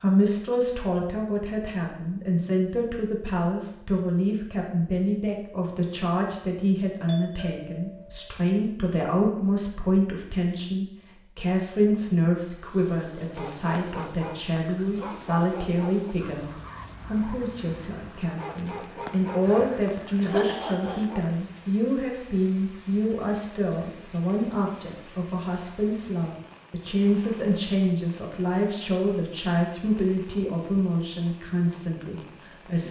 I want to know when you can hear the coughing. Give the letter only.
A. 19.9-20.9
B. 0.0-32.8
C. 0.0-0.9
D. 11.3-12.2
A.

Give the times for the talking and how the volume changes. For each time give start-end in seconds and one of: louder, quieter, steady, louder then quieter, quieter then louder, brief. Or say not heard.
0.0-32.8 steady.